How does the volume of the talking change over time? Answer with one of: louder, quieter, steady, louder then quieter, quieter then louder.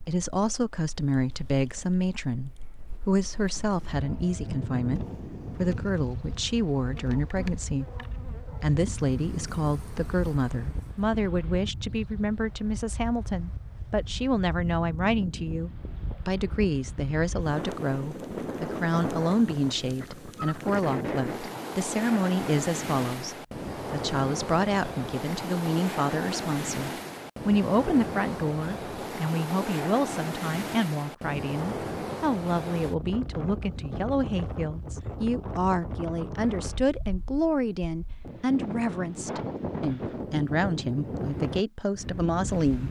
steady.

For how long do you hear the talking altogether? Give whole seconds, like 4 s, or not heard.
42 s.